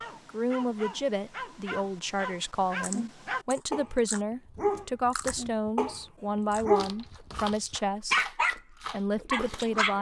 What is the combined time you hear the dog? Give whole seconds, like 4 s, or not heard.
9 s.